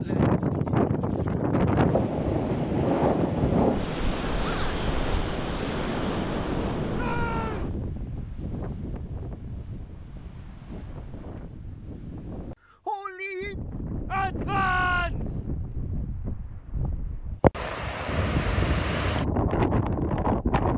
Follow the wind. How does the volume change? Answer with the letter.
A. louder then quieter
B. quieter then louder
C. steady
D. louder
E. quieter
B.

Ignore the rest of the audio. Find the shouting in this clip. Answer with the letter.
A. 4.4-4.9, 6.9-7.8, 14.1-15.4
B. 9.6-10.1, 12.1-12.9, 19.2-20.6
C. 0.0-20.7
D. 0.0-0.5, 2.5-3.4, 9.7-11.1
A.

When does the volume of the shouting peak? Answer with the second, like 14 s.
15 s.